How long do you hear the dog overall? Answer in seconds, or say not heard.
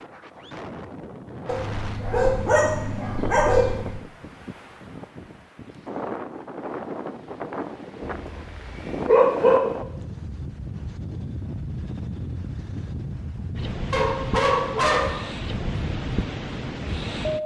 5 s.